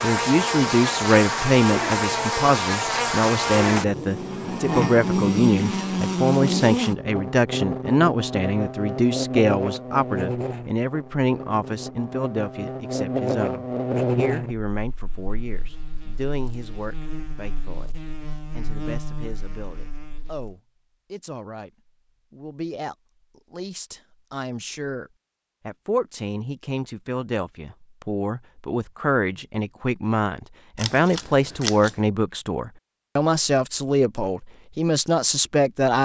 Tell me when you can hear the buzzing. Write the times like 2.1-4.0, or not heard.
0.0-20.5.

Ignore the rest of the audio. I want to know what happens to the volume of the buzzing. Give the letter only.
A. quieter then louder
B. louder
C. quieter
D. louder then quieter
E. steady
C.